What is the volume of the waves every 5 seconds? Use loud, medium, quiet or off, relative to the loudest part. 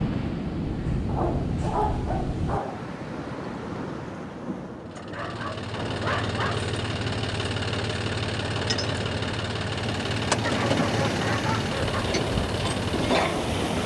loud, medium, loud.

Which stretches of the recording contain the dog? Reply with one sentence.
You can hear the dog from 1.1 to 2.9 s, from 5.0 to 6.7 s and from 10.4 to 12.1 s.